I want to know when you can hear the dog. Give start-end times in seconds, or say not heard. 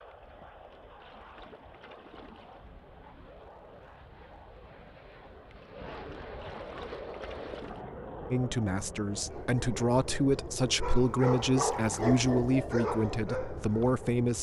9.1-14.2.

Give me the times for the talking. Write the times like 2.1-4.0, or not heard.
8.3-14.3.